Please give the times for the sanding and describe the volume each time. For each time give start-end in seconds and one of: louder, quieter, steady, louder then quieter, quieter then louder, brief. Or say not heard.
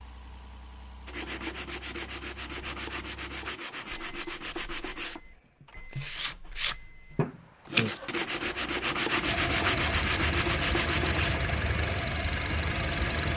1.1-11.4 louder.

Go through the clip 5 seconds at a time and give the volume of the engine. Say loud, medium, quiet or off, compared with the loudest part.
quiet, medium, loud.